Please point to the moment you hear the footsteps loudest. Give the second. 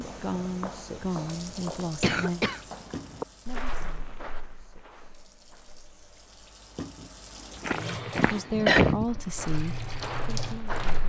9 s.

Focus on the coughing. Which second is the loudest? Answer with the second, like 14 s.
9 s.